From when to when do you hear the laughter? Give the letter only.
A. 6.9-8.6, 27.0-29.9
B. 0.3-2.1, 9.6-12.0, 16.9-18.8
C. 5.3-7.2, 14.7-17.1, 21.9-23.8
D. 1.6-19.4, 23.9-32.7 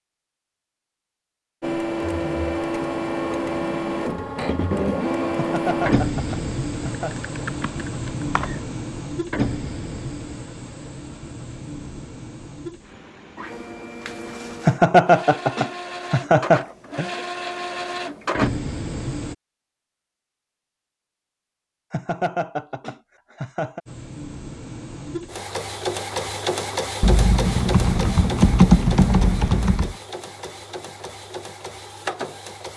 C.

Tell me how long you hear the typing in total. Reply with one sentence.
The typing can be heard for 5 seconds in total.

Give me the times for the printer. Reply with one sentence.
The printer can be heard from 1.6 to 19.4 s and from 23.9 to 32.7 s.